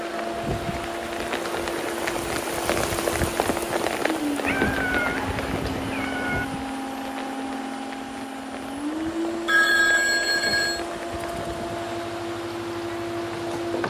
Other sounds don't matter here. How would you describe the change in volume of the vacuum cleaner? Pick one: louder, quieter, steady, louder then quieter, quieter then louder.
steady.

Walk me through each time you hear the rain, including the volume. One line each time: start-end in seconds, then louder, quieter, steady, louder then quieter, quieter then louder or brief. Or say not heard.
0.0-13.8 quieter.